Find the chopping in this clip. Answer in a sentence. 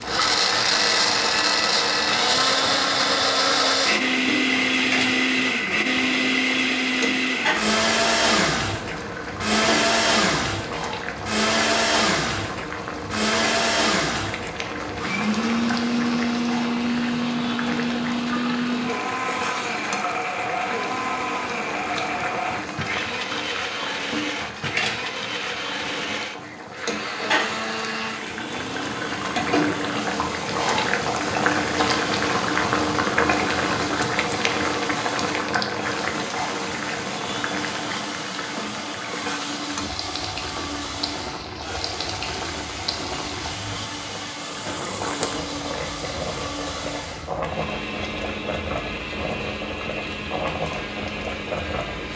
The chopping can't be heard in this clip.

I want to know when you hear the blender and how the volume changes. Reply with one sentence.
You can hear the blender from 0.0 to 52.1 s, getting quieter.